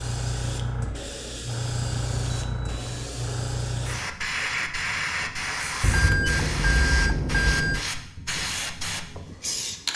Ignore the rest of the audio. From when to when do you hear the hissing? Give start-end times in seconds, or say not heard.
0.0-9.9.